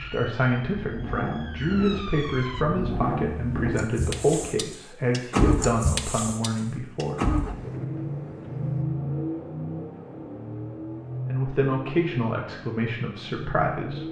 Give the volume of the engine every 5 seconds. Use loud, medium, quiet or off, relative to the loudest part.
loud, loud, medium.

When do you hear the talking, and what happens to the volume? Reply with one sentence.
The talking can be heard from 0.0 to 7.3 s, at a steady volume; and briefly from 11.2 to 14.0 s.